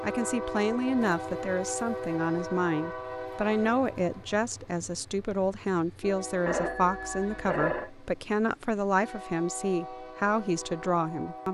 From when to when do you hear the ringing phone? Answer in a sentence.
The ringing phone can be heard from 6.5 to 7.9 s.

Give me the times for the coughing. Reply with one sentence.
The coughing can't be heard in this clip.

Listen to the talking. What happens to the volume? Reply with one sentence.
The loudness of the talking stays about the same.